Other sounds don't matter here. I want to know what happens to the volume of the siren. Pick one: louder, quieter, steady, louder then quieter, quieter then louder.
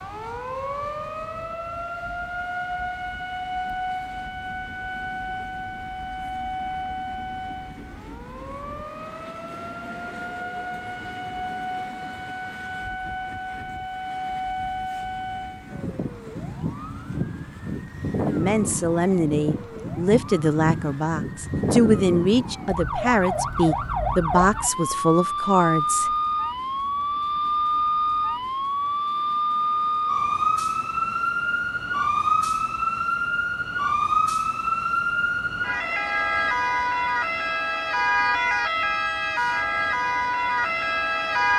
louder.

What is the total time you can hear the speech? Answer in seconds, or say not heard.
8 s.